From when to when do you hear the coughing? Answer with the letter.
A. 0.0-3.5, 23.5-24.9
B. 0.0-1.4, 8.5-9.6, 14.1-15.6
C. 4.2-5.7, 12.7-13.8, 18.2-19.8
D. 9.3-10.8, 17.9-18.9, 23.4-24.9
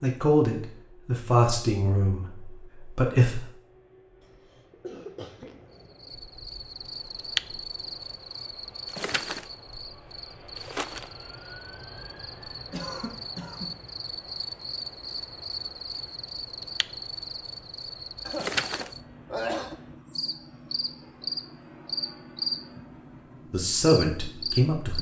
C.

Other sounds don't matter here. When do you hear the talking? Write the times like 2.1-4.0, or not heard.
0.0-3.5, 23.5-24.9.